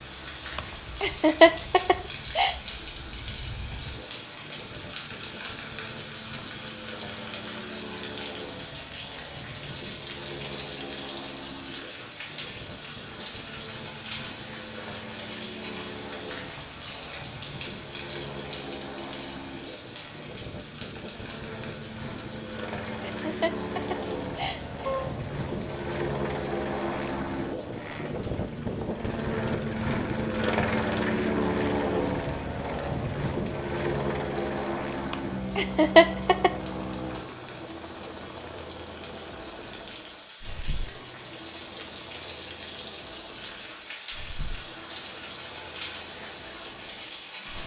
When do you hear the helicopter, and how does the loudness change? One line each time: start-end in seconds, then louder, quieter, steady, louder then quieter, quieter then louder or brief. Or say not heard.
0.0-47.6 louder then quieter.